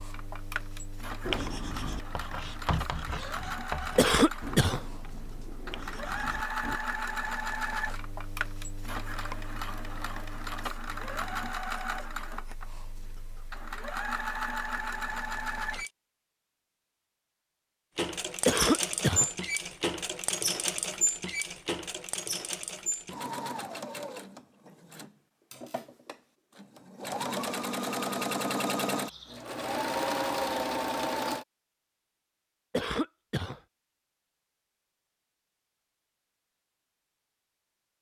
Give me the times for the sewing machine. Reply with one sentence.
You can hear the sewing machine from 0.0 to 15.9 s and from 17.9 to 31.4 s.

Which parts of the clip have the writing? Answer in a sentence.
The writing can be heard from 1.2 to 6.8 s.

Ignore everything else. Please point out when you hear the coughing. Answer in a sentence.
You can hear the coughing from 4.0 to 4.8 s, from 18.4 to 19.3 s and from 32.7 to 33.6 s.